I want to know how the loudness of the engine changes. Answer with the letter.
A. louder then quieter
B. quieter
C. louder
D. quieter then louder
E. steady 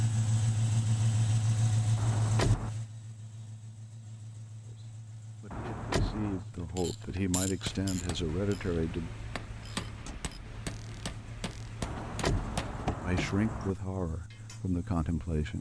B.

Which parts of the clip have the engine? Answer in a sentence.
The engine can be heard from 0.0 to 15.5 s.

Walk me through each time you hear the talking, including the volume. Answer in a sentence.
The talking can be heard from 4.7 to 9.1 s, getting louder; and briefly from 13.0 to 15.5 s.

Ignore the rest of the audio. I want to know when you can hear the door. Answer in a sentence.
The door can be heard from 1.9 to 2.7 s, from 5.5 to 6.4 s and from 11.8 to 13.8 s.